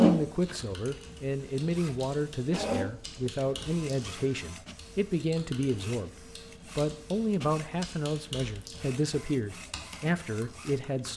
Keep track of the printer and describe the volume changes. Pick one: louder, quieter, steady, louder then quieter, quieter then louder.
louder then quieter.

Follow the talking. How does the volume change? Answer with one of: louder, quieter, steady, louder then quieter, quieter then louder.
steady.